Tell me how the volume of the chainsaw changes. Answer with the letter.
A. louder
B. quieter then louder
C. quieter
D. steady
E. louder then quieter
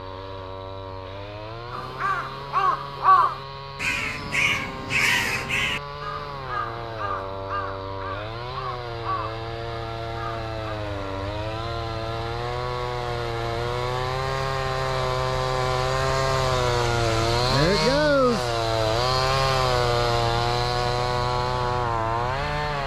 A.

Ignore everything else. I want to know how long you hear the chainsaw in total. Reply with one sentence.
The chainsaw can be heard for 23 seconds in total.